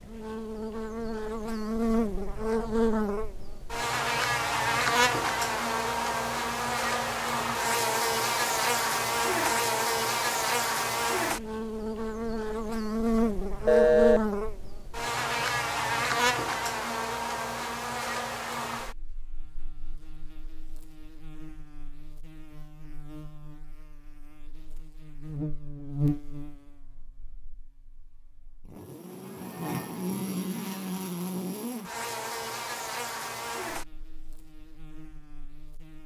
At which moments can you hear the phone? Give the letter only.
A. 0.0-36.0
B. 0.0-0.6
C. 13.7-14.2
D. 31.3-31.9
C.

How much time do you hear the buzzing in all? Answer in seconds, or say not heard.
36 s.